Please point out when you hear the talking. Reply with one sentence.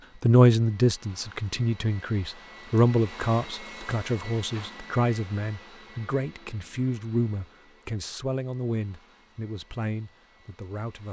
You can hear the talking from 0.2 to 11.0 s.